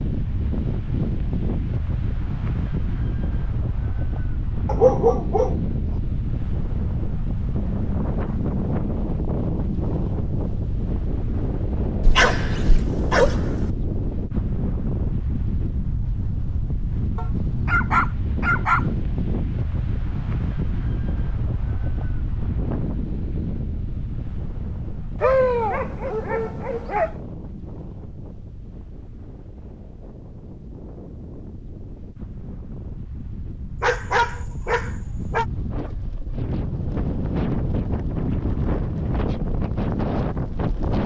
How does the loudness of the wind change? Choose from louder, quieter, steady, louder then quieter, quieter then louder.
quieter then louder.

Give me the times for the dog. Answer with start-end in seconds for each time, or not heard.
4.7-5.5, 12.0-13.7, 17.1-18.9, 25.2-27.1, 33.8-35.5.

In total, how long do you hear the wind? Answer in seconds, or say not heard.
41 s.